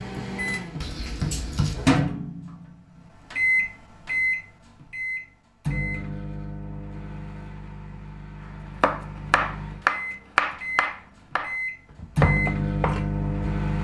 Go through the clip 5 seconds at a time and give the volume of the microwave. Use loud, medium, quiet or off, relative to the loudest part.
loud, medium, loud.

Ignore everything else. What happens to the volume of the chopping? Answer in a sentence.
The volume of the chopping goes down, then up.